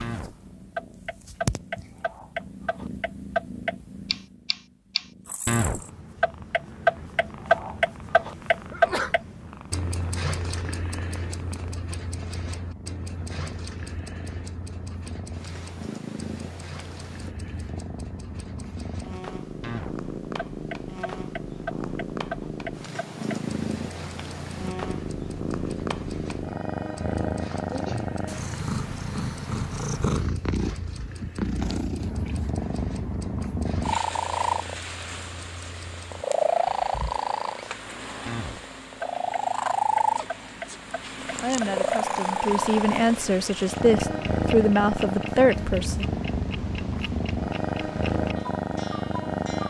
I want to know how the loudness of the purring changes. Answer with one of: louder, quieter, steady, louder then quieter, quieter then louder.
louder.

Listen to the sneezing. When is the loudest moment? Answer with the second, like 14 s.
9 s.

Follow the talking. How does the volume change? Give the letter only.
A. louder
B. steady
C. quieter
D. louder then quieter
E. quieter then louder
A.